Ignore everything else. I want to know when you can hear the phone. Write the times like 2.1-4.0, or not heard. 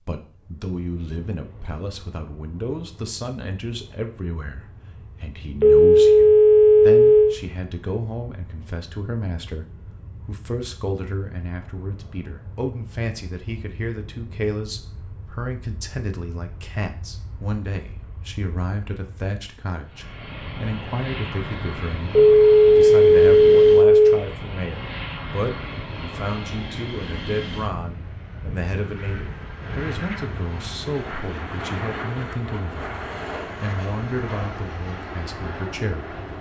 5.6-7.3, 22.1-24.2.